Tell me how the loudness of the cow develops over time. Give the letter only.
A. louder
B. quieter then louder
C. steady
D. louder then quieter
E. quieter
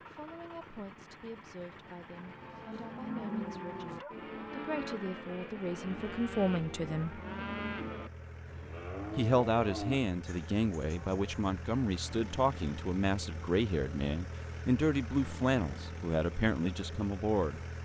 C.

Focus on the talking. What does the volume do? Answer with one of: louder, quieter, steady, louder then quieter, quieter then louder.
louder.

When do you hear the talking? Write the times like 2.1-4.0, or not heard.
0.1-7.2, 9.2-17.6.